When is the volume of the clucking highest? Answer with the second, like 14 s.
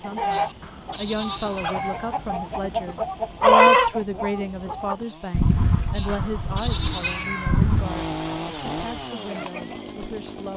4 s.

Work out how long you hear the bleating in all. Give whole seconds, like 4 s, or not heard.
3 s.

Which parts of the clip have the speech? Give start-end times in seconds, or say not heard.
0.0-10.5.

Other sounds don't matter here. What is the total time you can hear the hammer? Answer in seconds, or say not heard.
not heard.